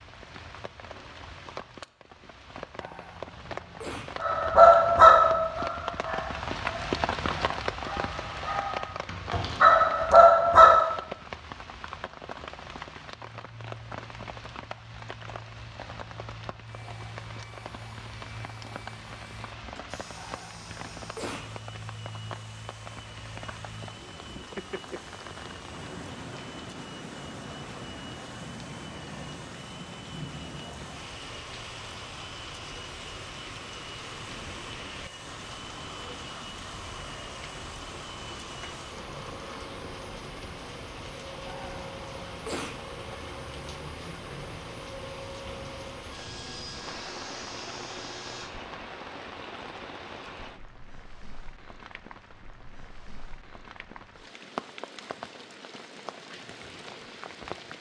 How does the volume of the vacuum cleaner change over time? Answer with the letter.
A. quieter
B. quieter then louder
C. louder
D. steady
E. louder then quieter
C.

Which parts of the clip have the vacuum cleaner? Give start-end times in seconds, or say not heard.
16.6-48.5.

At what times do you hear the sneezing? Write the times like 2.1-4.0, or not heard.
2.8-4.1, 20.1-21.5, 41.5-42.8.